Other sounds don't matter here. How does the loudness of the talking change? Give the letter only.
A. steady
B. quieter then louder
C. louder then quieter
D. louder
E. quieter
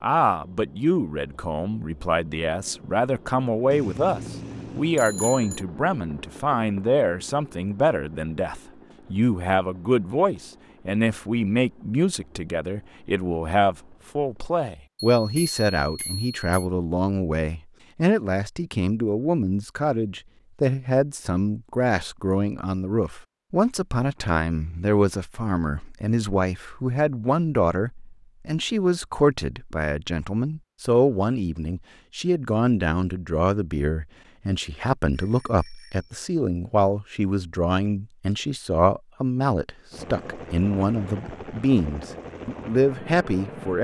A.